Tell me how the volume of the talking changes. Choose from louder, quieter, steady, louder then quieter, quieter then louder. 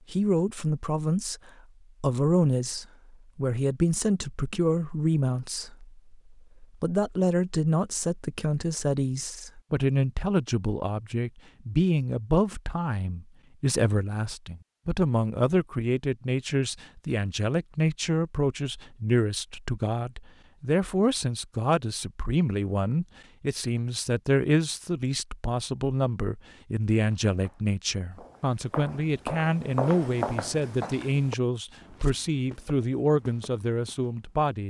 steady.